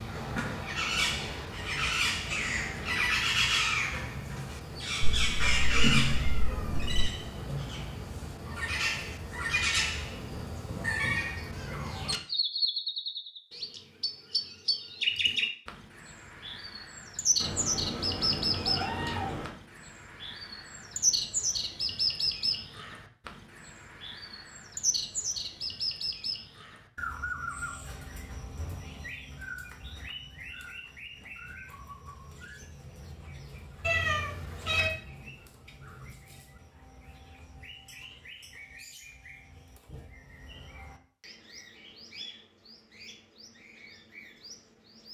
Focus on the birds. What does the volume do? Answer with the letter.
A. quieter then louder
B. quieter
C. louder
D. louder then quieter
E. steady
B.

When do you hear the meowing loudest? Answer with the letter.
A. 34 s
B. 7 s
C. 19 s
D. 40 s
A.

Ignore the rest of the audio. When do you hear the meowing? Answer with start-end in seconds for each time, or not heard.
5.0-7.0, 17.4-19.6, 33.8-34.9.